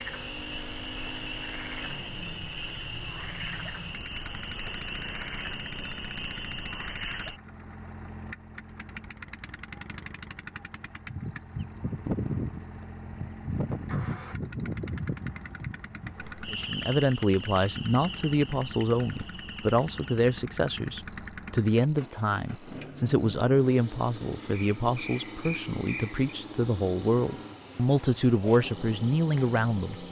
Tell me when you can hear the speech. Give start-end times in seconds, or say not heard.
16.5-30.0.